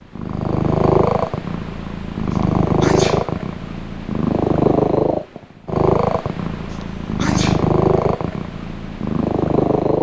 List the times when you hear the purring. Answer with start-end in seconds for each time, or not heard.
0.1-9.9.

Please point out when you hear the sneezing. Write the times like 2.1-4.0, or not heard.
2.3-3.4, 6.7-7.7.